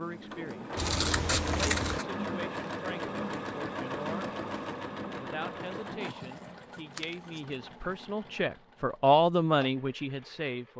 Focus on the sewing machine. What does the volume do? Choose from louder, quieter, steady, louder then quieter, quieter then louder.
quieter.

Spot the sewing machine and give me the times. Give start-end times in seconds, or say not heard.
0.0-10.7.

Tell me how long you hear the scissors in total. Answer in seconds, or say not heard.
3 s.